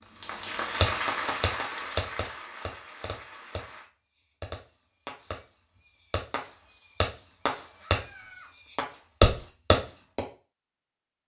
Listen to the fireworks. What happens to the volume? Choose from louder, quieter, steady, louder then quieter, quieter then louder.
quieter then louder.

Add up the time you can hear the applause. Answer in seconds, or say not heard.
4 s.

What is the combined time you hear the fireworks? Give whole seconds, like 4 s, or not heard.
10 s.